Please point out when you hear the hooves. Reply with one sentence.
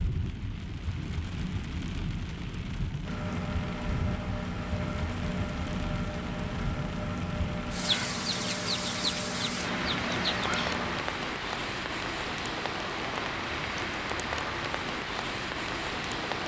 You can't hear the hooves here.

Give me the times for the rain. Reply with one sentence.
The rain can be heard from 0.0 to 16.4 s.